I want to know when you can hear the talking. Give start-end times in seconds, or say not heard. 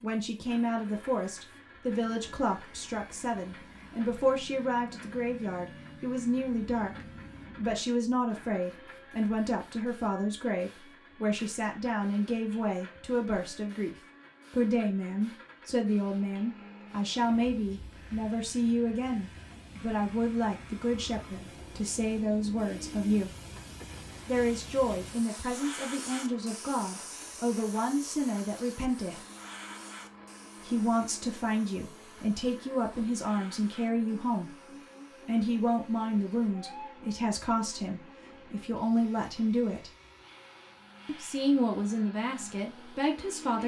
0.0-23.3, 24.2-29.2, 30.6-34.5, 35.2-39.9, 41.0-43.6.